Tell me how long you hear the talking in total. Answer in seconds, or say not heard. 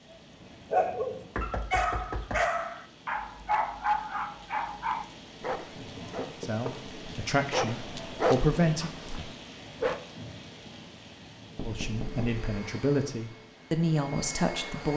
6 s.